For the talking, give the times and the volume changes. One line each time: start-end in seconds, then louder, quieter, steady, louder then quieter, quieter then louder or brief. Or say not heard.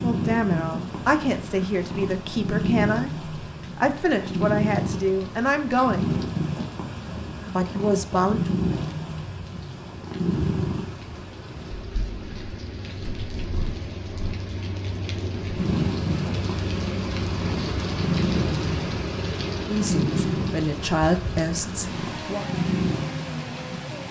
0.0-6.2 steady
7.5-8.6 brief
19.6-22.4 brief.